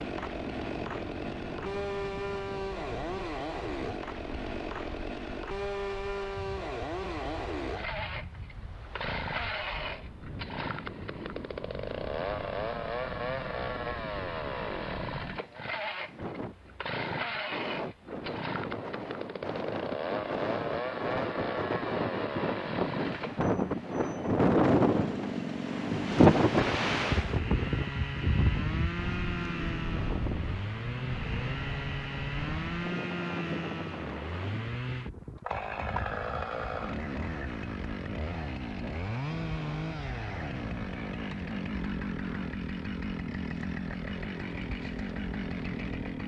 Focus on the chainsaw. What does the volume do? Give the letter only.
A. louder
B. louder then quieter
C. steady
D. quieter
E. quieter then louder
C.